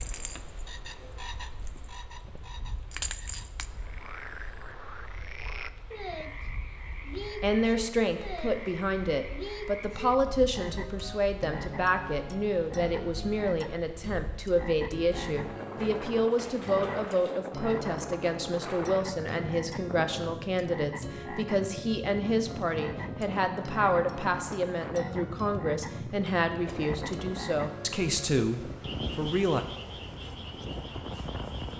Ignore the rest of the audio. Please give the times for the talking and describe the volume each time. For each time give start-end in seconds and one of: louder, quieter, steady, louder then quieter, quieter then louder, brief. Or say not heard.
7.3-29.6 steady.